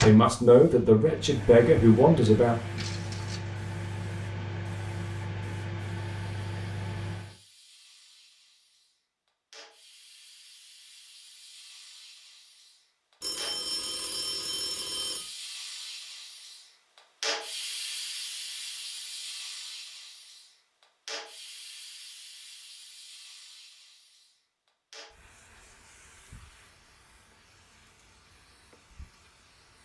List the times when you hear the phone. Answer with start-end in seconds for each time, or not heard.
13.2-15.3.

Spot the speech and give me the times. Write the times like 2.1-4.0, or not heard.
0.0-2.5.